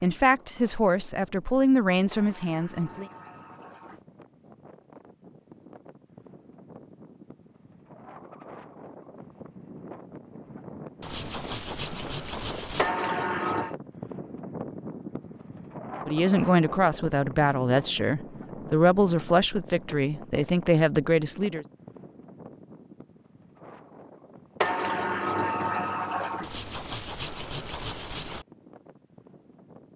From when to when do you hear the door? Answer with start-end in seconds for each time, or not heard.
2.1-4.0, 12.8-13.8, 24.6-26.5.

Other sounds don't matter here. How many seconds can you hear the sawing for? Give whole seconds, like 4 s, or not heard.
4 s.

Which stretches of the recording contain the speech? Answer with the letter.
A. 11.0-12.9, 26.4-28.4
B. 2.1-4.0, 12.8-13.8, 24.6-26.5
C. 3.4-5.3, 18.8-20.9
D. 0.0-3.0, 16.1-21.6
D.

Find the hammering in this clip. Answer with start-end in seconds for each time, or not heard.
not heard.